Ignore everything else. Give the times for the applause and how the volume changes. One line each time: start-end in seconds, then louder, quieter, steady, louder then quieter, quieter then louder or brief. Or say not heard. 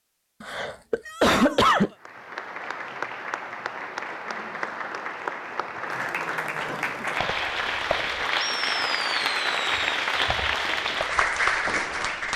1.9-12.3 louder.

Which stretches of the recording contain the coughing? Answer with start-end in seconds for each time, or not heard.
0.4-1.9, 6.7-7.3.